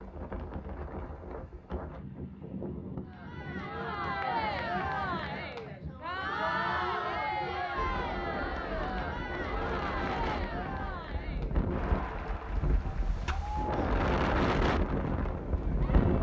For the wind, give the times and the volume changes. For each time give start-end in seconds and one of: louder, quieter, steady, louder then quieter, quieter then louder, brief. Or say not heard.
0.0-16.1 louder.